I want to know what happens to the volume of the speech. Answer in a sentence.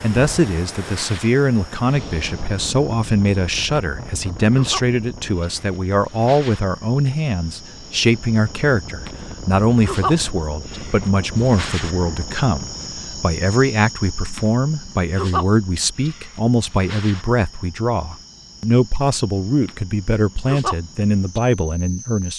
The volume of the speech stays about the same.